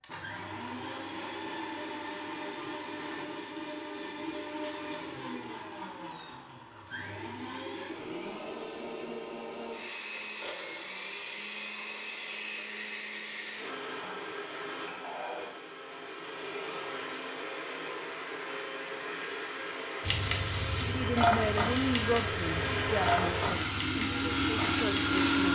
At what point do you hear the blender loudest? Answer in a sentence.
The loudest moment of the blender is at 25 seconds.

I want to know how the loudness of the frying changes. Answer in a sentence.
The volume of the frying goes down.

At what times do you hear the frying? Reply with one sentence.
You can hear the frying from 20.0 to 25.5 s.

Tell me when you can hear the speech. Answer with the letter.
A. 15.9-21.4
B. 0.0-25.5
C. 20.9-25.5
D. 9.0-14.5
C.